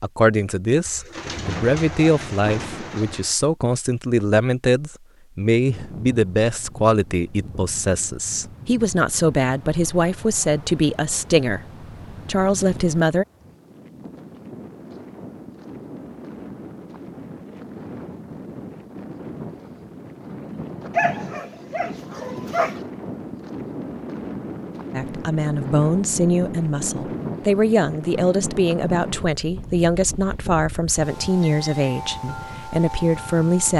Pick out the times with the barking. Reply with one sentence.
You can hear the barking from 20.9 to 22.8 s.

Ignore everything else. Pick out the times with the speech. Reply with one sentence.
The speech can be heard from 0.0 to 13.2 s and from 24.9 to 33.7 s.